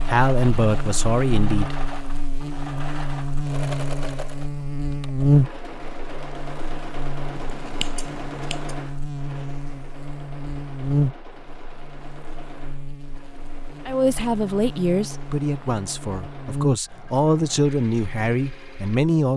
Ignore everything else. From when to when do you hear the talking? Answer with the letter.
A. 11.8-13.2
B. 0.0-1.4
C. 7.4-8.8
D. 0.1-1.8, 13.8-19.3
D.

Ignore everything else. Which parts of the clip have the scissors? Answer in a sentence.
You can hear the scissors from 7.4 to 8.8 s.